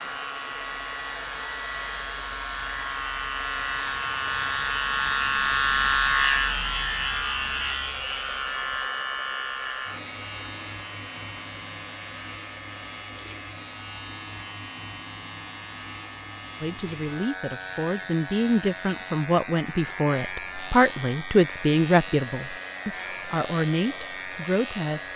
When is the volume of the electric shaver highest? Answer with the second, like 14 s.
6 s.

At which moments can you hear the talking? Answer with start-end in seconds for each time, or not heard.
16.6-25.1.